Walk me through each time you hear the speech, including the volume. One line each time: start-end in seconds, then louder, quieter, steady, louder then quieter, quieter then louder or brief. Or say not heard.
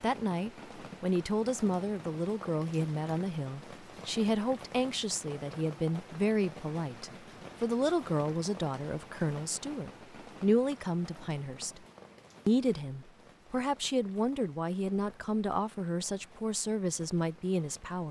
0.0-11.8 steady
12.4-18.0 steady.